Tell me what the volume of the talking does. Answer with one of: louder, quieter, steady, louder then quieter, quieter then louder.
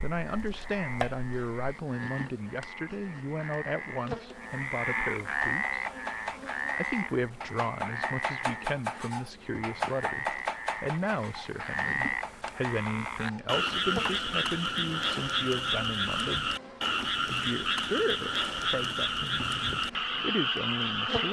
steady.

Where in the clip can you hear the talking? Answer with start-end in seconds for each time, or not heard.
0.0-5.8, 6.8-16.6, 17.2-21.2.